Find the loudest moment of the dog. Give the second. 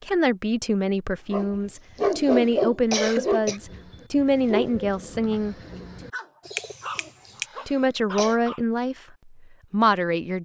2 s.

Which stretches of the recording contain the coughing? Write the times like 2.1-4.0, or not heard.
1.6-3.6, 7.0-8.3.